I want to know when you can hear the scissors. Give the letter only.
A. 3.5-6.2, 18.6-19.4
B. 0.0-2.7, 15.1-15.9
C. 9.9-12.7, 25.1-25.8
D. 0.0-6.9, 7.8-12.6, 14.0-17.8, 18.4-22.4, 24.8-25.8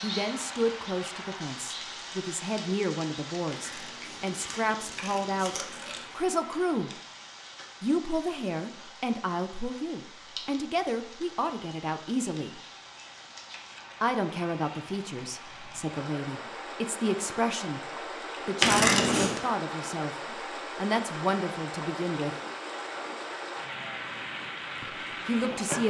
A.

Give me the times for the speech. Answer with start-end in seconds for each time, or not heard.
0.0-6.9, 7.8-12.6, 14.0-17.8, 18.4-22.4, 24.8-25.8.